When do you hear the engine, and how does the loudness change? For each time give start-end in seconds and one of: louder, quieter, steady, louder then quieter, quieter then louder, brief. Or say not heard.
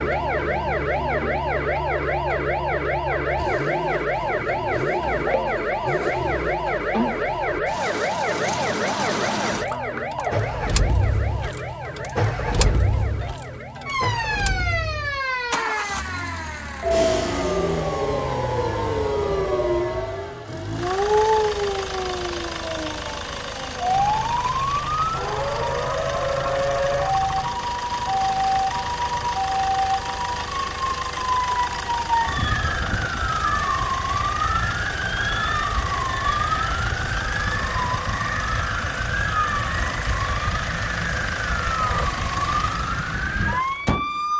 0.0-44.3 steady.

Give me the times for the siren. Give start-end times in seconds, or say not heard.
0.0-44.3.